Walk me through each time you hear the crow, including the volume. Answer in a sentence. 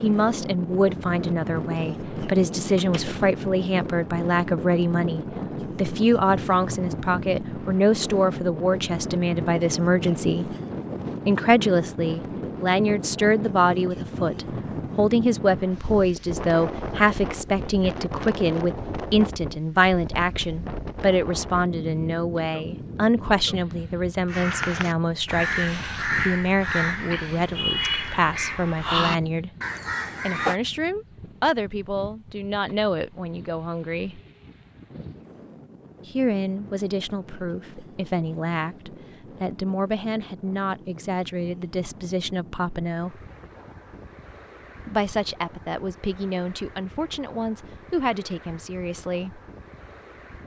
You can hear the crow from 24.2 to 30.6 s, at a steady volume.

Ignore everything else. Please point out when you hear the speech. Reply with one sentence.
The speech can be heard from 0.0 to 10.5 s, from 11.2 to 29.5 s, from 30.2 to 34.2 s, from 36.0 to 43.2 s and from 44.9 to 49.4 s.